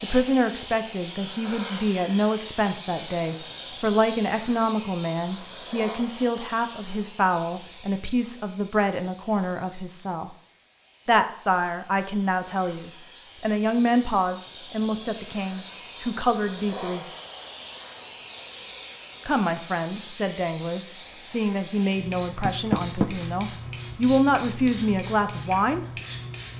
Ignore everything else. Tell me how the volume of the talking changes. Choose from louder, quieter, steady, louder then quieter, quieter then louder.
steady.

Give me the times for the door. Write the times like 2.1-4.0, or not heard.
22.4-23.1.